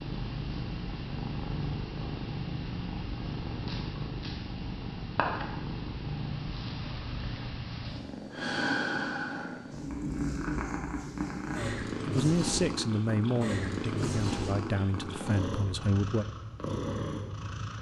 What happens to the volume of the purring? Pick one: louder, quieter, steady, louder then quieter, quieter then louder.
steady.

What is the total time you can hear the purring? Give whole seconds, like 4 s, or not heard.
18 s.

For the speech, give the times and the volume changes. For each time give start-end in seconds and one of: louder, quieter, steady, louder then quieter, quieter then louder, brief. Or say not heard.
12.1-16.2 quieter.